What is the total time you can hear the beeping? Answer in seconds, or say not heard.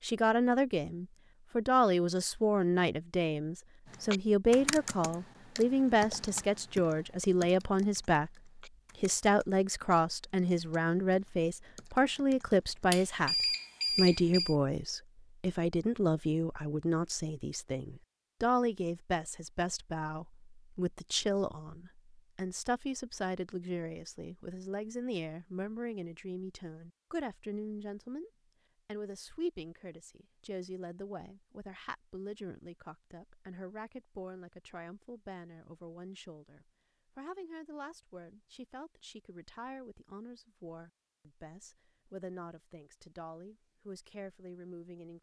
2 s.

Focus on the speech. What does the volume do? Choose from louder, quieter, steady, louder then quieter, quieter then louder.
quieter.